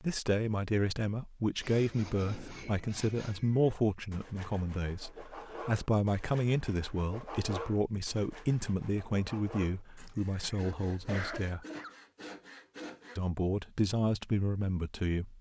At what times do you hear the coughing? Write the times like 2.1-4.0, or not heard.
10.1-12.0.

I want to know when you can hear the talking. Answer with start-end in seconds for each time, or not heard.
0.0-11.7, 13.2-15.3.